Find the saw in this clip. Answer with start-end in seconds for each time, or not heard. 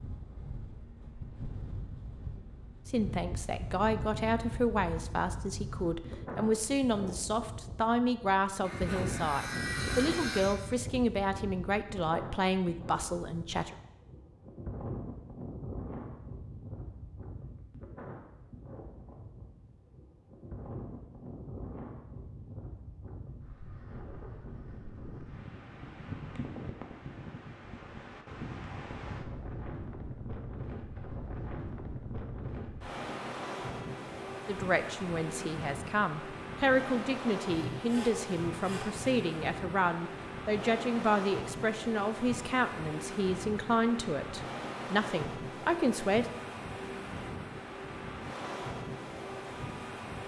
8.6-10.6, 37.5-39.1.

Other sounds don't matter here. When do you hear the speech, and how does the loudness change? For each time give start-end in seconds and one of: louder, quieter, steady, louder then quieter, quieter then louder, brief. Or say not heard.
2.9-13.8 steady
34.5-46.2 steady.